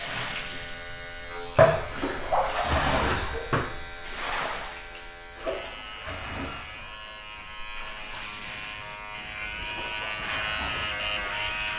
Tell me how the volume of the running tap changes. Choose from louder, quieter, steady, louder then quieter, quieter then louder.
quieter.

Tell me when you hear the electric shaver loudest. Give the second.
11 s.